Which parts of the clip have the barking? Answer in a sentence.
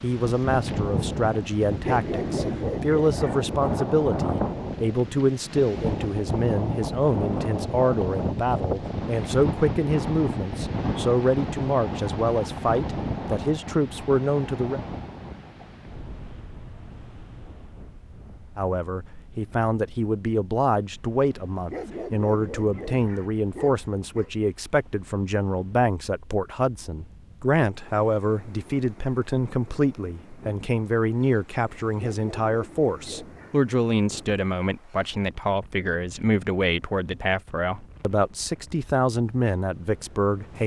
You can hear the barking from 1.7 to 3.4 s, from 21.5 to 24.3 s and from 31.9 to 33.6 s.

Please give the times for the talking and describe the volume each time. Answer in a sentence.
You can hear the talking from 0.0 to 14.8 s, at a steady volume; and from 18.6 to 40.6 s, at a steady volume.